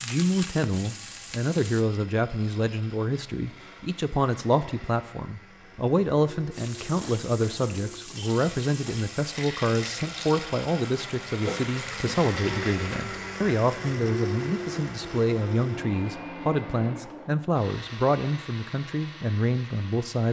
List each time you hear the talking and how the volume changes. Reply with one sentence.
You can hear the talking from 0.0 to 20.2 s, at a steady volume.